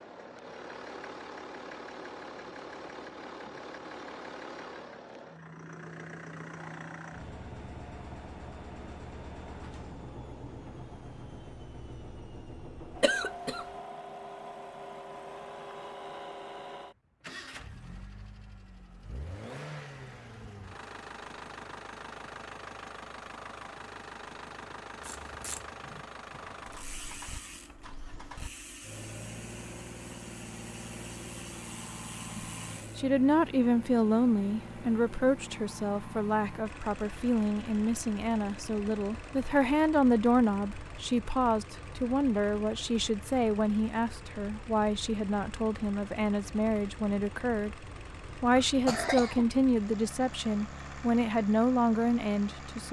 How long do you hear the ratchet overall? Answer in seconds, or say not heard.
8 s.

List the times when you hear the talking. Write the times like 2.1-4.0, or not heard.
32.4-52.8.